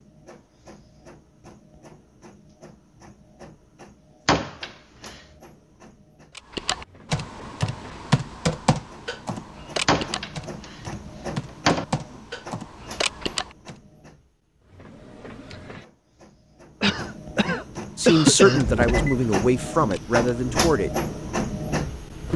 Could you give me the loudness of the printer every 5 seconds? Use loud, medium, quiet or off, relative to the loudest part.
quiet, quiet, quiet, medium, loud.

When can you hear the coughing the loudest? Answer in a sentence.
The volume of the coughing peaks at 18 seconds.